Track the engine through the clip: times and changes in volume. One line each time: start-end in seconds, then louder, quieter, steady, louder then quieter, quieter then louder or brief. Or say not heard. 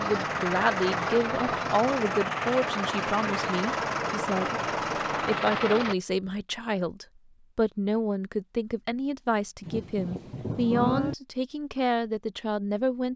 0.0-6.0 steady.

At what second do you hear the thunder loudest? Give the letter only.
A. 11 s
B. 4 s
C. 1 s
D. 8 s
A.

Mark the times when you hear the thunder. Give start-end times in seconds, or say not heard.
9.7-11.2.